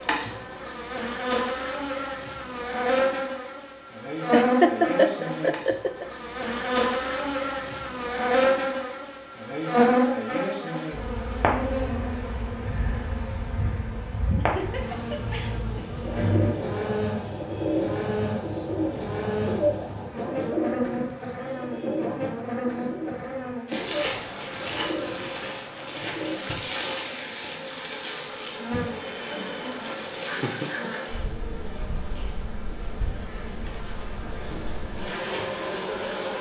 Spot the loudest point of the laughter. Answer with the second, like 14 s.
5 s.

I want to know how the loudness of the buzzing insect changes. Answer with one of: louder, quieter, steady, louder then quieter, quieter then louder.
quieter.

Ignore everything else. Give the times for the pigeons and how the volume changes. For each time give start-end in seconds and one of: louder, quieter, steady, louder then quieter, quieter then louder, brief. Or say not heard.
15.9-26.4 quieter.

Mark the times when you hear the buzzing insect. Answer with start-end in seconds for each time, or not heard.
0.0-36.3.